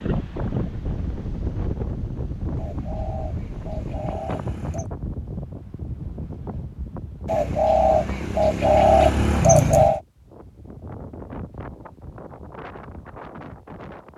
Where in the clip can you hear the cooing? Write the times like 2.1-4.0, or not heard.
2.5-4.9, 7.2-10.0.